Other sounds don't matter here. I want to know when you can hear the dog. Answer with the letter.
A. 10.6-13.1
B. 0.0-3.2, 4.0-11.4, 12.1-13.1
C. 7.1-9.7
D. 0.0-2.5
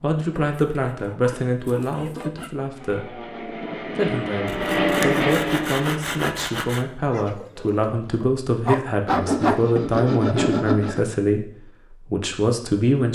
C.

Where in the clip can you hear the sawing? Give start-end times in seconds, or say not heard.
0.3-2.5, 4.5-6.8, 9.1-11.1.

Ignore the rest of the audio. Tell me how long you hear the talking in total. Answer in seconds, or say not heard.
12 s.